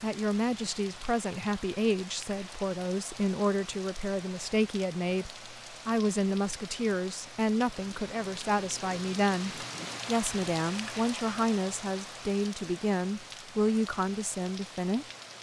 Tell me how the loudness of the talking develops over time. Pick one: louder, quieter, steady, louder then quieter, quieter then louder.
steady.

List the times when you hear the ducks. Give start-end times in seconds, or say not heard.
not heard.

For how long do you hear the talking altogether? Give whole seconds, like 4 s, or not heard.
15 s.